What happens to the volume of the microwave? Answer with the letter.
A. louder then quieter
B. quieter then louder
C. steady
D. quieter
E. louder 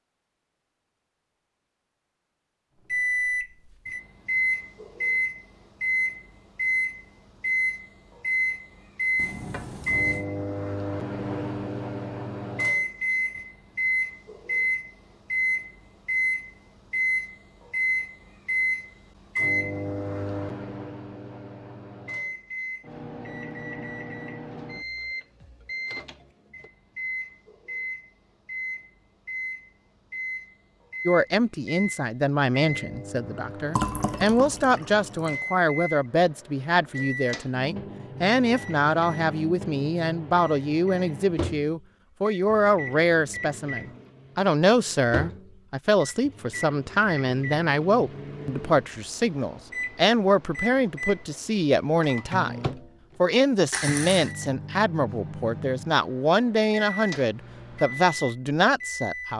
D.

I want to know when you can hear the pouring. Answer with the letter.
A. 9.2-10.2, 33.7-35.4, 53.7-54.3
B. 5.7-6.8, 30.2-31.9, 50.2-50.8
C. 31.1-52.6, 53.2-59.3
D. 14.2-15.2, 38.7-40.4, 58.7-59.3
A.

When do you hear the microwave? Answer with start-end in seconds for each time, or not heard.
2.9-59.3.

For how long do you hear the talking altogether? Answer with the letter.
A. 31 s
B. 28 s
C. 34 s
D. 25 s
B.